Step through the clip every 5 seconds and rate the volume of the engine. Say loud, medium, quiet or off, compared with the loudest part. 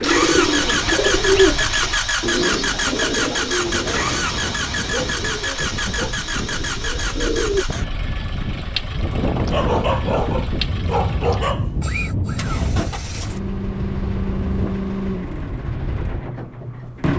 loud, medium, medium, medium.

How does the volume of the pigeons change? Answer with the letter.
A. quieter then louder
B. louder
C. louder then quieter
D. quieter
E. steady
D.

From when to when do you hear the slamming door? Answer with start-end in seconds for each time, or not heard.
not heard.